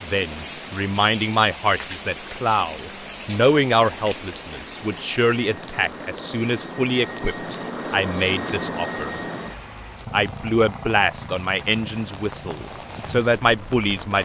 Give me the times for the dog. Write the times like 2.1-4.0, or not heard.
not heard.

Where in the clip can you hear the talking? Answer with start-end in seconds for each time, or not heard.
0.0-9.2, 10.1-14.1.